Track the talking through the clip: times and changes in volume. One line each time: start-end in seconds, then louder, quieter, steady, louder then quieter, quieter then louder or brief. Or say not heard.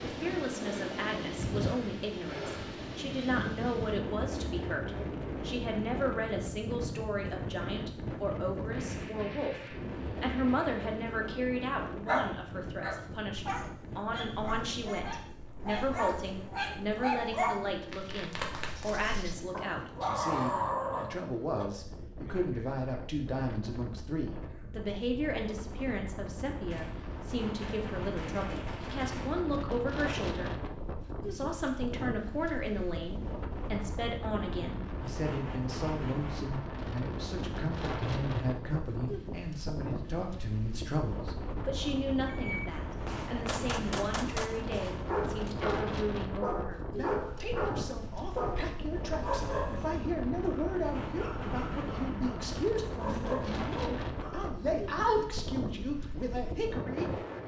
0.0-30.6 steady
31.3-57.2 steady.